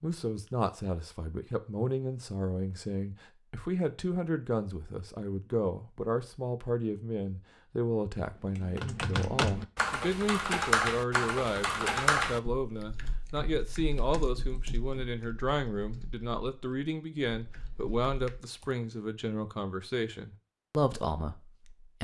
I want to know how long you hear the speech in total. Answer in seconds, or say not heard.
22 s.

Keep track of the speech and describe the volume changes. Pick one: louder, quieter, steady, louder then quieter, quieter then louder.
steady.